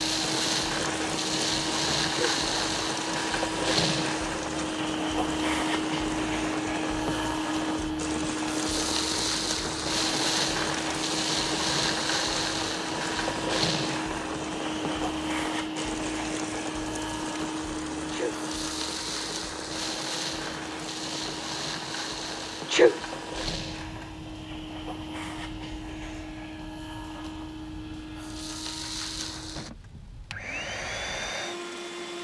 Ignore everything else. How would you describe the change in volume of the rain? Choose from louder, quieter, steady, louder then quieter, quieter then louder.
quieter.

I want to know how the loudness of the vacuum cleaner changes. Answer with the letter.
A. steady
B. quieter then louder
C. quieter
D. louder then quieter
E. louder
C.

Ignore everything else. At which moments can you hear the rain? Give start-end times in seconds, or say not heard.
0.1-32.1.